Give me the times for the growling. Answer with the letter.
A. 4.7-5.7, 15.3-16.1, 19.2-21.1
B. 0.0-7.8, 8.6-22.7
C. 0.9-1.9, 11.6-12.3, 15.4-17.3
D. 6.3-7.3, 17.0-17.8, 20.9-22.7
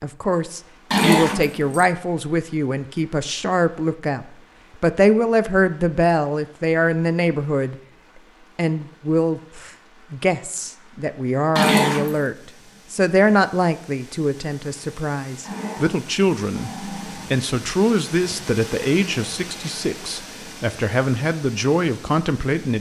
C.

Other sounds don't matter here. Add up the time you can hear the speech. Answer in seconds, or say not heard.
22 s.